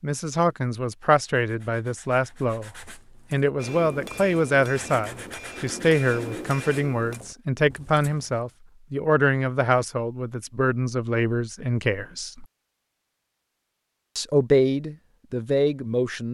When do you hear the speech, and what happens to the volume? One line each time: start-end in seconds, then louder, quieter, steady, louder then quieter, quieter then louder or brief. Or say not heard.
0.0-12.4 steady
14.2-16.2 brief.